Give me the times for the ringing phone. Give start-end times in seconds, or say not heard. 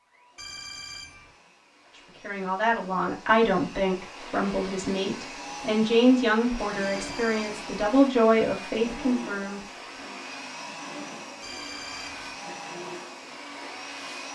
0.3-1.3, 6.8-7.7, 11.4-12.3.